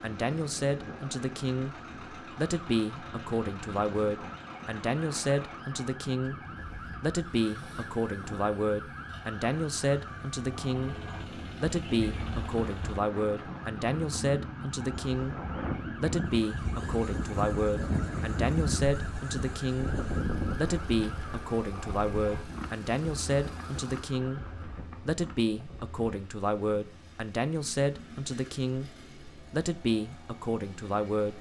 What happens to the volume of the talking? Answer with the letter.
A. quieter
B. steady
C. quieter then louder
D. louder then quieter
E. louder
B.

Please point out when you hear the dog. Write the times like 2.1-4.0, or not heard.
not heard.